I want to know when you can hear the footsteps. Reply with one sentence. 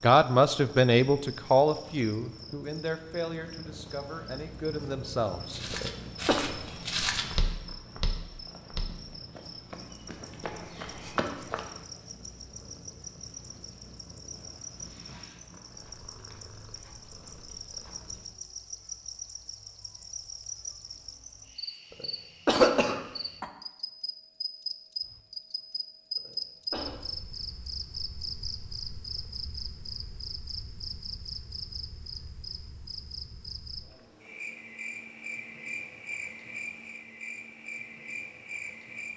The footsteps can be heard from 5.5 to 11.8 s.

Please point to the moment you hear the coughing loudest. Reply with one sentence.
The volume of the coughing peaks at 23 seconds.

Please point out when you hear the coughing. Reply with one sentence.
You can hear the coughing from 5.7 to 6.4 s, from 22.0 to 23.4 s and from 26.1 to 26.9 s.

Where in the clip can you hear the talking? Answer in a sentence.
The talking can be heard from 0.0 to 5.6 s.